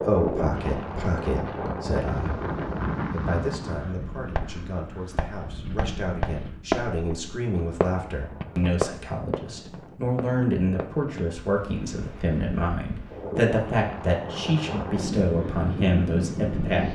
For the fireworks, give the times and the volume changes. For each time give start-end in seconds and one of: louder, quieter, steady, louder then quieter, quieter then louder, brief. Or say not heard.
4.3-11.3 louder then quieter.